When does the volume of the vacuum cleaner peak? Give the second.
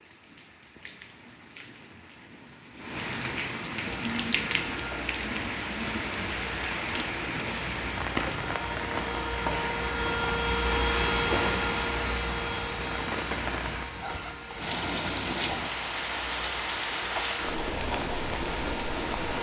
11 s.